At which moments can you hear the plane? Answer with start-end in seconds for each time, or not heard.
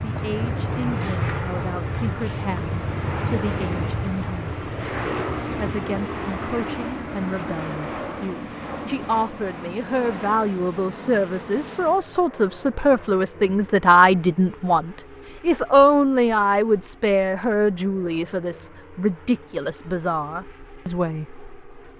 0.0-21.9.